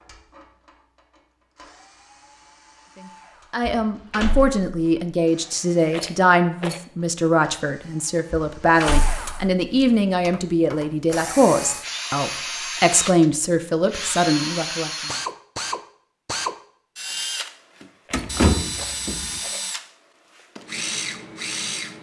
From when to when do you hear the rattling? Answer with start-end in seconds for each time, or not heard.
5.9-6.8, 18.1-19.7.